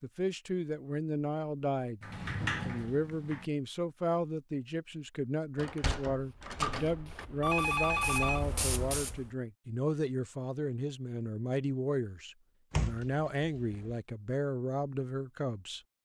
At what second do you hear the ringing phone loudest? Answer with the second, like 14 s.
8 s.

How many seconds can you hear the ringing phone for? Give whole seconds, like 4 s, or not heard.
2 s.